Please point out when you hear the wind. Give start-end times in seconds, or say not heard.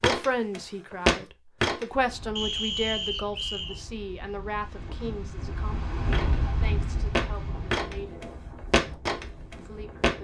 1.9-10.1.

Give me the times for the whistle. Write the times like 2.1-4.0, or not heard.
2.4-3.8.